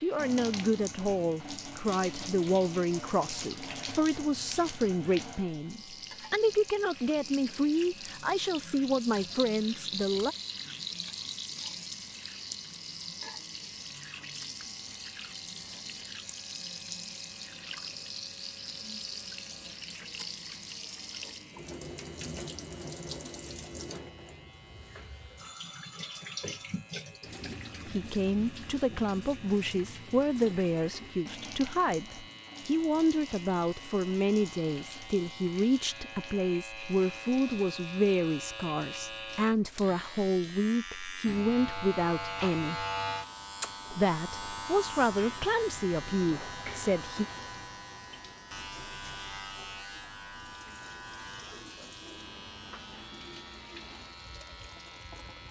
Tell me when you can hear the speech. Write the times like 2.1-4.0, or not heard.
0.0-10.3, 27.9-42.9, 43.9-47.2.